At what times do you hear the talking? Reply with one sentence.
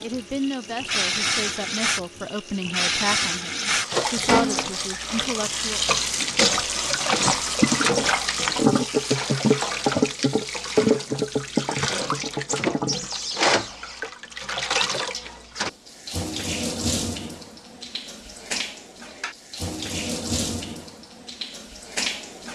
You can hear the talking from 0.0 to 5.8 s.